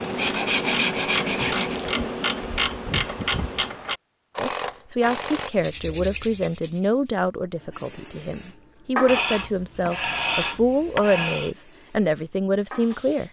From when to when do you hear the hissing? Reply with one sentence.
The hissing can be heard from 0.0 to 3.8 s and from 7.5 to 13.2 s.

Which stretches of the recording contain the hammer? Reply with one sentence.
The hammer can't be heard in this clip.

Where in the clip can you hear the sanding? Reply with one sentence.
The sanding can be heard from 0.1 to 1.8 s, from 5.5 to 7.1 s and from 9.1 to 11.5 s.